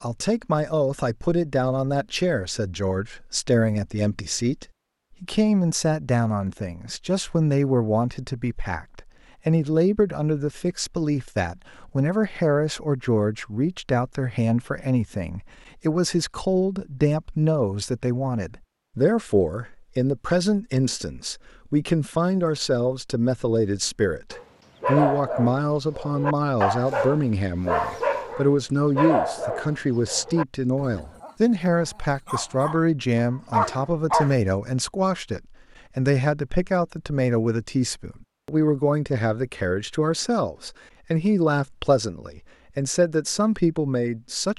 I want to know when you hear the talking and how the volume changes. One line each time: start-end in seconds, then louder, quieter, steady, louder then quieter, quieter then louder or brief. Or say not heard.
0.0-44.5 steady.